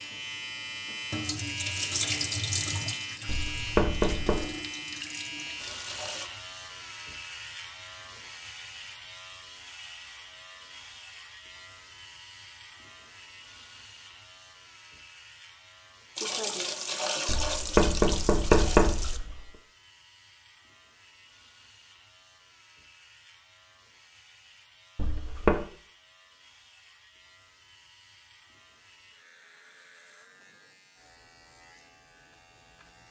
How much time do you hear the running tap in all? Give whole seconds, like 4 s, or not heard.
9 s.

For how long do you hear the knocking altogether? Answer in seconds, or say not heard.
4 s.